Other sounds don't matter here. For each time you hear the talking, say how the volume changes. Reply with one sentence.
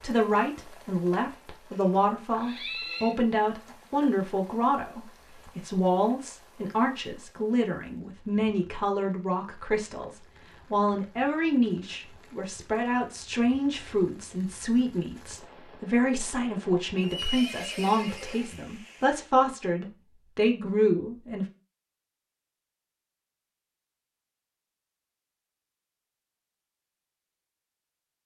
You can hear the talking from 0.0 to 21.4 s, at a steady volume.